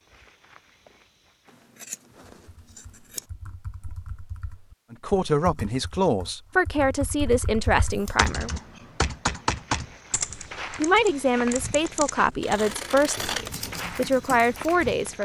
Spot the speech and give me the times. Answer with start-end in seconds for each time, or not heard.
4.9-8.5, 10.8-15.1.